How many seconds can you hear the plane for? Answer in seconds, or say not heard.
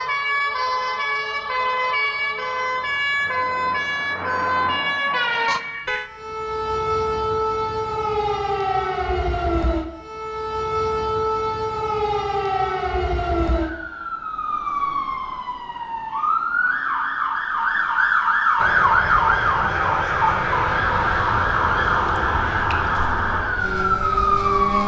6 s.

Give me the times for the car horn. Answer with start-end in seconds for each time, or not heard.
5.5-6.1.